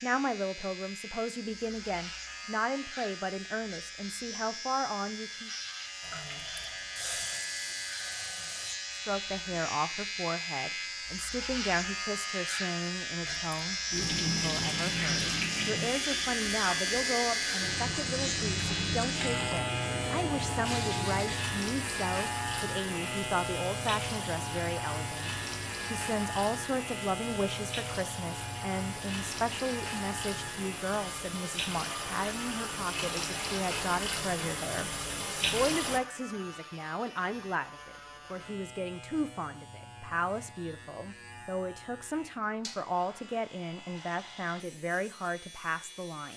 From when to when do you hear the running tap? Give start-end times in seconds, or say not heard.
6.0-8.8, 13.2-36.0.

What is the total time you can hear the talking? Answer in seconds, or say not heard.
43 s.